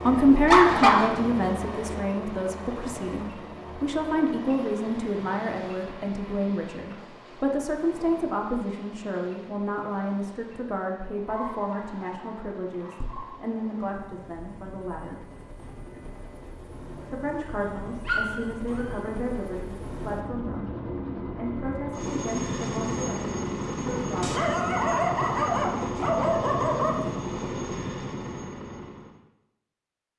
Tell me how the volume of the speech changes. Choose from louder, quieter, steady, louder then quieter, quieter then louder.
quieter.